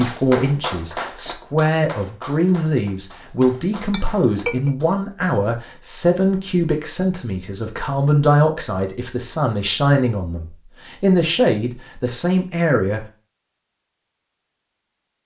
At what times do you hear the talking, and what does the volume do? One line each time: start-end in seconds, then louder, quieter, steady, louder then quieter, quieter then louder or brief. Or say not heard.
0.0-13.1 steady.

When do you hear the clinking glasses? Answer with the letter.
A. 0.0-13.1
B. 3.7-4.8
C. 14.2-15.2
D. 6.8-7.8
B.